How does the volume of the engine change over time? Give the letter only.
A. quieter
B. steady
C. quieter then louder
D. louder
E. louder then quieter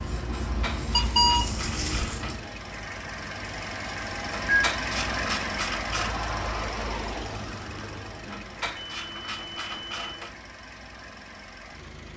E.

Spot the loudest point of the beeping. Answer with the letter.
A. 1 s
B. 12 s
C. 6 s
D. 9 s
A.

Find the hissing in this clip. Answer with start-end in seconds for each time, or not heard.
0.0-2.4.